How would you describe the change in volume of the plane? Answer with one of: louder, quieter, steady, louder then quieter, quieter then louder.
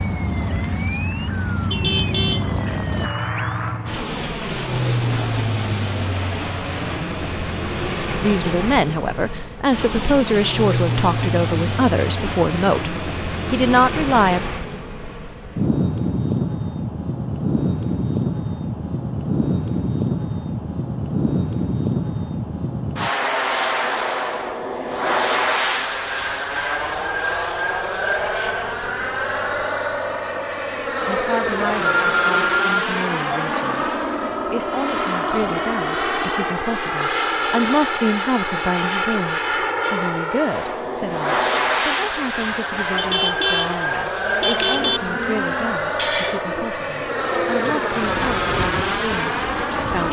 steady.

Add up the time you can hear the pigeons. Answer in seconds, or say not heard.
6 s.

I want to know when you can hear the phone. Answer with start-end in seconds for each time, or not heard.
31.4-33.4.